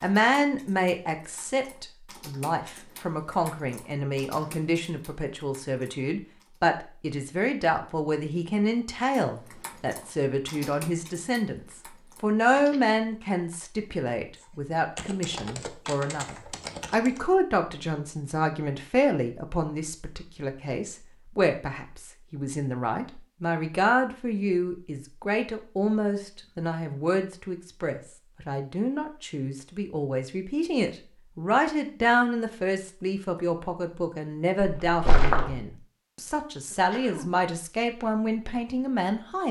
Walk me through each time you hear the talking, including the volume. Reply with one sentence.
You can hear the talking from 0.0 to 39.4 s, at a steady volume.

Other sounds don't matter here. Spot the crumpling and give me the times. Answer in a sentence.
The crumpling can be heard from 34.6 to 35.6 s.